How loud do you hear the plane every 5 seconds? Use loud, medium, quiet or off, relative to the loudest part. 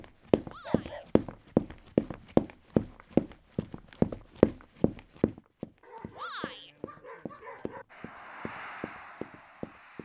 off, loud.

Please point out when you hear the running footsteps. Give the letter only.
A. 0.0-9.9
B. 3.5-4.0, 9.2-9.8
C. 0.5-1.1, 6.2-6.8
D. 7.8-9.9
A.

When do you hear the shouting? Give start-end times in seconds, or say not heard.
0.5-1.1, 6.2-6.8.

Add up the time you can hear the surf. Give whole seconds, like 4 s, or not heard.
not heard.